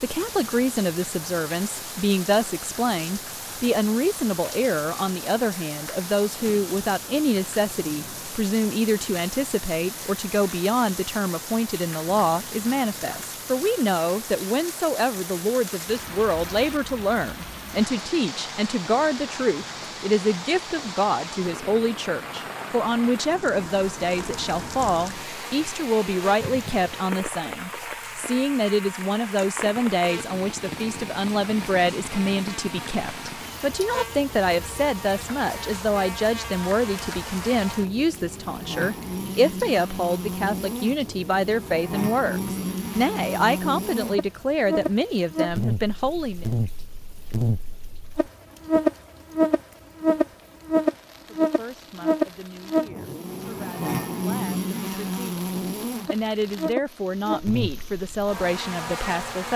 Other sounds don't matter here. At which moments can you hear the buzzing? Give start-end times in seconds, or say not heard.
23.6-59.5.